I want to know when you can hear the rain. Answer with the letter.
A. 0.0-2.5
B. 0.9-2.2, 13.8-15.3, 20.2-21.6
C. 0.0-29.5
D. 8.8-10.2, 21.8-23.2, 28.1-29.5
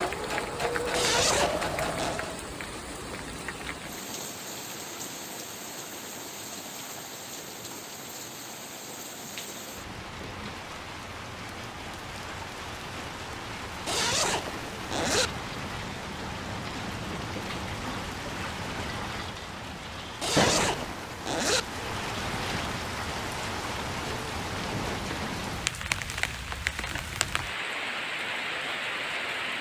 C.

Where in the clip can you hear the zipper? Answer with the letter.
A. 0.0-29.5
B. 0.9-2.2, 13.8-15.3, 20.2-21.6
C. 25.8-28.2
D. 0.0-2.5
B.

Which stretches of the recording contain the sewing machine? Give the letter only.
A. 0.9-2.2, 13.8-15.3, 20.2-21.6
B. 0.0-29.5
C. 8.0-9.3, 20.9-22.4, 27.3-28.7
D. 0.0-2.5
D.